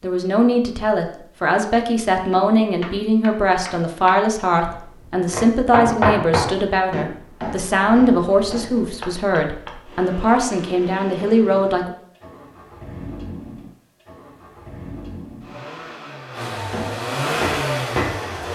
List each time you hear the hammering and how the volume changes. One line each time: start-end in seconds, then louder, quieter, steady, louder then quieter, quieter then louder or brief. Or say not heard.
2.3-9.8 louder then quieter
16.7-18.4 brief.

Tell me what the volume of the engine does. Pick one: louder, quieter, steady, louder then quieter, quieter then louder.
louder.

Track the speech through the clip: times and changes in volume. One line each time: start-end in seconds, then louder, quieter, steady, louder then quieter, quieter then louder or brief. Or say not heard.
0.0-11.9 steady.